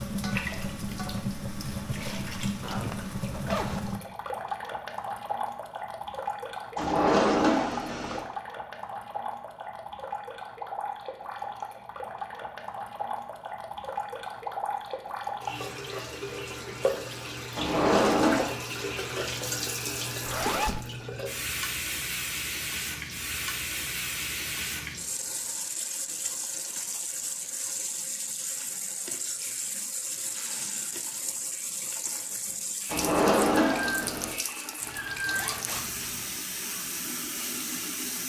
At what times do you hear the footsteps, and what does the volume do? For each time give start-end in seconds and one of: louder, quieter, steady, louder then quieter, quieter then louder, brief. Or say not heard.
not heard.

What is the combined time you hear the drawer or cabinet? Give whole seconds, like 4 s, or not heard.
4 s.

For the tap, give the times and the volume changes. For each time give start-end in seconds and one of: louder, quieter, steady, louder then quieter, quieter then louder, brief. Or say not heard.
0.0-38.2 steady.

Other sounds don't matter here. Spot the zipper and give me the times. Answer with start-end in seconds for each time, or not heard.
2.6-3.9, 20.2-20.9, 34.8-36.4.